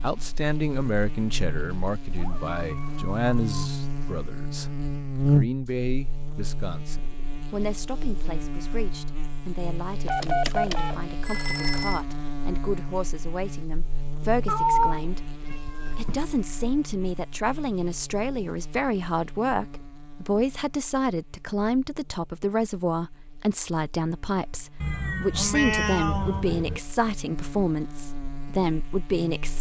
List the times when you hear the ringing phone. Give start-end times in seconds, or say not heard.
10.1-12.1.